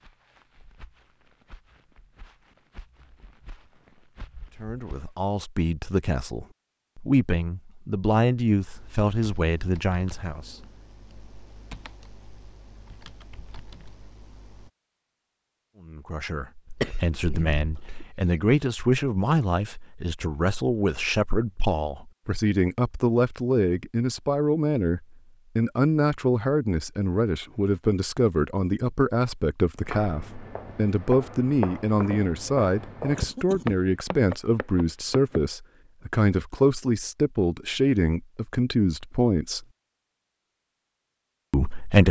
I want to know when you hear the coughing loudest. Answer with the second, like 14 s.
17 s.